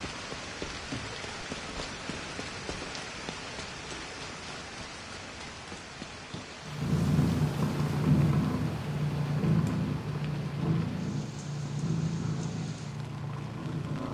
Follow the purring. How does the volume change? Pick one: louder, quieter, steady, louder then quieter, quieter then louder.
quieter.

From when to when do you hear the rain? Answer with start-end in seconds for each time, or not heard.
0.0-14.0.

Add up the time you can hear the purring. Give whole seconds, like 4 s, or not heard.
7 s.